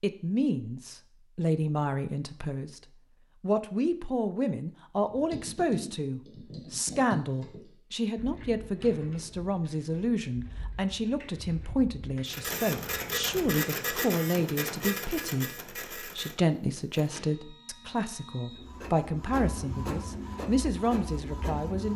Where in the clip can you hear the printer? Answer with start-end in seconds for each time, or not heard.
12.2-21.9.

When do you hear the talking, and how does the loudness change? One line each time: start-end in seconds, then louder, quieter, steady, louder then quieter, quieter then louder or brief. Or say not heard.
0.0-2.8 brief
3.4-21.9 steady.